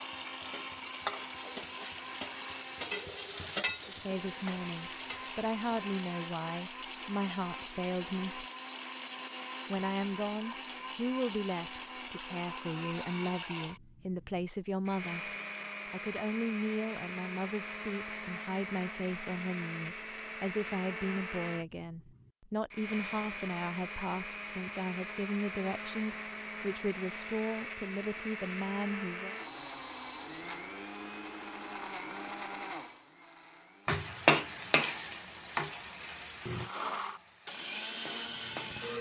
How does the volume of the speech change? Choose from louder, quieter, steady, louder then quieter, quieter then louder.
steady.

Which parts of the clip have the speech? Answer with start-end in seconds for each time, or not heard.
3.9-8.4, 9.7-15.3, 15.9-29.4.